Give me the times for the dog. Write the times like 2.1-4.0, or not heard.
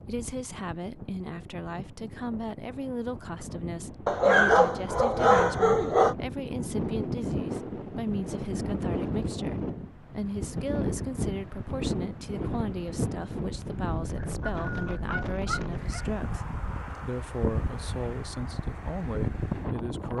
4.0-6.2, 14.2-16.1.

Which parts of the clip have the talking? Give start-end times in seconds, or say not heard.
0.1-20.1.